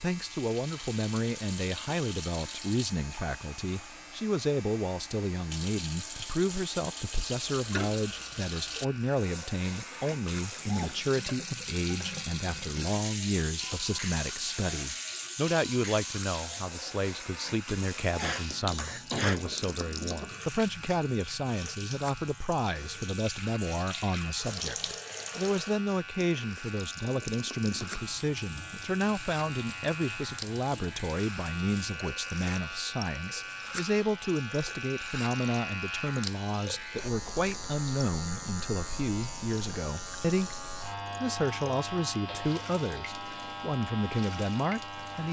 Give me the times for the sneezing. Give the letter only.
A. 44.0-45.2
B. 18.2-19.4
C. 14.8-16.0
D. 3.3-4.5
B.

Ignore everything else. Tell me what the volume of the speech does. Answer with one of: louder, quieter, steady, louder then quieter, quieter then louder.
steady.